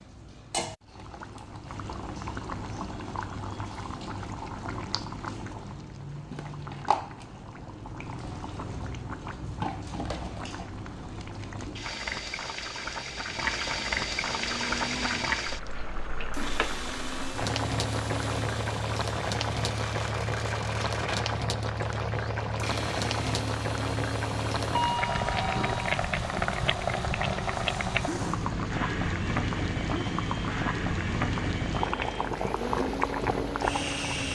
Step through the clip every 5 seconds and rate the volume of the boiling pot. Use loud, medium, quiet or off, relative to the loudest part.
medium, medium, loud, loud, loud, loud, loud.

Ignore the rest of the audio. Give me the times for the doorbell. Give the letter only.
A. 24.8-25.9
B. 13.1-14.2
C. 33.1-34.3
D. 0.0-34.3
A.